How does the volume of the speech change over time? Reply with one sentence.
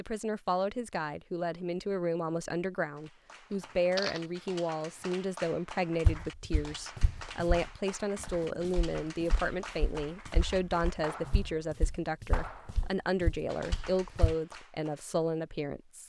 The loudness of the speech stays about the same.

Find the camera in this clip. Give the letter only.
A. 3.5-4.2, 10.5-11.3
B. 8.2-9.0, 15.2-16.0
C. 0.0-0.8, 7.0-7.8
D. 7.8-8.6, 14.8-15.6
A.